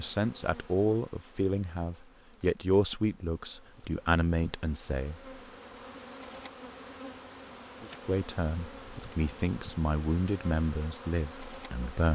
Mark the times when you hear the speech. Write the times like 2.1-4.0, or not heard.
0.0-5.3, 8.1-12.1.